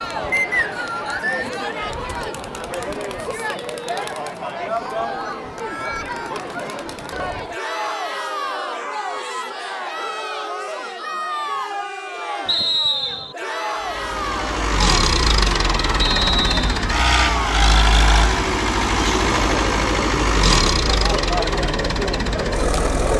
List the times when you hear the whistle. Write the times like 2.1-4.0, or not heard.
0.3-1.5, 12.4-13.3, 16.0-16.6.